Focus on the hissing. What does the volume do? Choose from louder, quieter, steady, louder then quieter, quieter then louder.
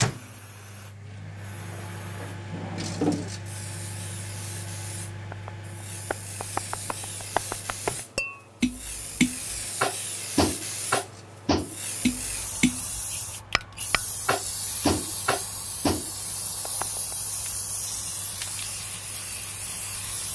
louder.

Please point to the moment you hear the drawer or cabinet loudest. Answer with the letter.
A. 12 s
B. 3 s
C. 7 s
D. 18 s
B.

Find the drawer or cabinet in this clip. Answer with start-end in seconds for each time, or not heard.
1.7-3.3.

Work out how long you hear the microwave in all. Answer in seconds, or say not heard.
20 s.